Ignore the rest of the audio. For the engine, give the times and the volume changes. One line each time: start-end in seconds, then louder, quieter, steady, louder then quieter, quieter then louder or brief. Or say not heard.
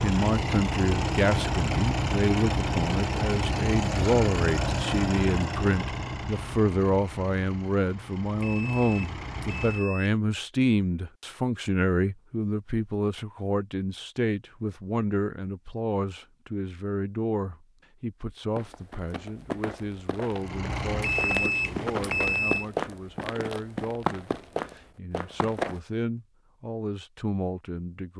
0.0-9.8 quieter
20.2-22.6 brief.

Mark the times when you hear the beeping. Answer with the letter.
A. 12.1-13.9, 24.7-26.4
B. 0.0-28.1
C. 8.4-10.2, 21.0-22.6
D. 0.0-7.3
C.